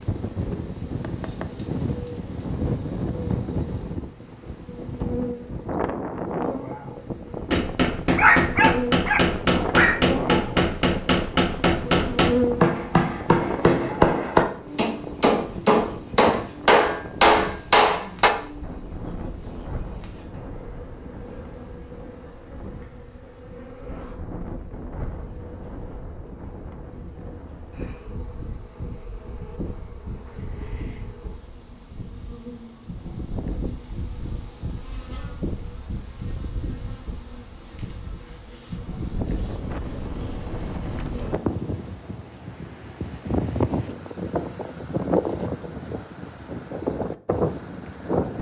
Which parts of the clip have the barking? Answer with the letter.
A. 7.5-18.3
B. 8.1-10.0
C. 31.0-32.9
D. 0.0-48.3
B.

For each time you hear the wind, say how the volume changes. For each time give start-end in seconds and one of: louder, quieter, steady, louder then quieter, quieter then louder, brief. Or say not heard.
0.0-48.3 quieter then louder.